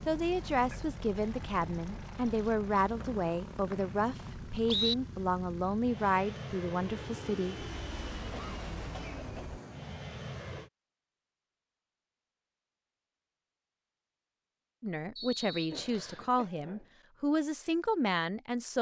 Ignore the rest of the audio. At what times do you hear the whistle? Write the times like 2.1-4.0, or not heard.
3.0-5.0, 15.2-16.2.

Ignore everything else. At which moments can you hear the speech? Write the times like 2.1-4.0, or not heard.
0.1-7.5, 14.8-18.7.